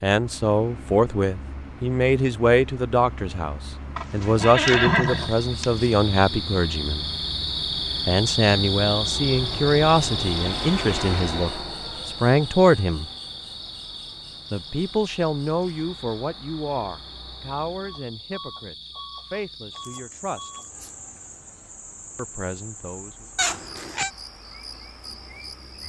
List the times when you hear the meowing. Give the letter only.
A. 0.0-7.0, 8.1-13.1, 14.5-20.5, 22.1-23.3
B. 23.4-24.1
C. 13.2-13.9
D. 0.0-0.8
B.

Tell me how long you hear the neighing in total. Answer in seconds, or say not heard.
2 s.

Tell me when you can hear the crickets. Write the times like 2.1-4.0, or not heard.
5.0-25.8.